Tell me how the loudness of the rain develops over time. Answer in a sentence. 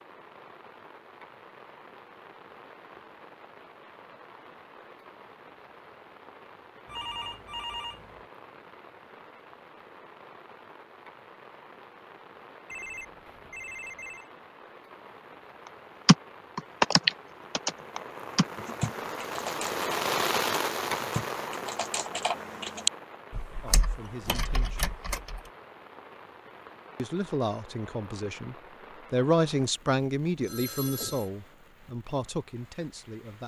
The loudness of the rain goes up, then down.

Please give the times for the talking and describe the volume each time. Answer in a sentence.
You can hear the talking briefly from 23.6 to 24.9 s; and from 26.9 to 33.4 s, getting louder then quieter.